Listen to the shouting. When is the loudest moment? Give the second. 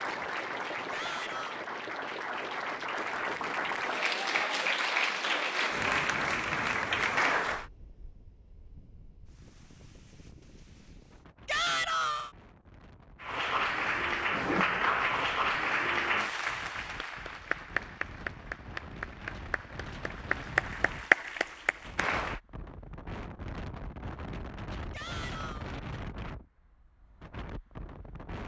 12 s.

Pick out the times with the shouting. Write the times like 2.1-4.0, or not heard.
0.9-1.6, 11.4-12.3, 24.9-25.7.